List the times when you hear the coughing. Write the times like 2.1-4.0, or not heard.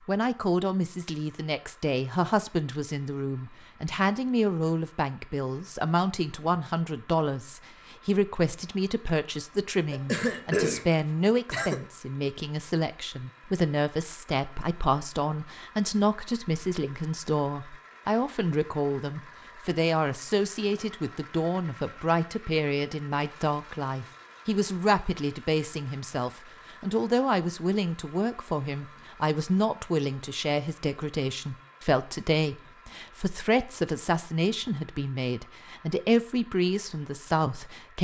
9.9-11.8.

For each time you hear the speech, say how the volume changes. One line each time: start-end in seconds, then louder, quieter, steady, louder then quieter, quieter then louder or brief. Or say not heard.
0.1-38.0 steady.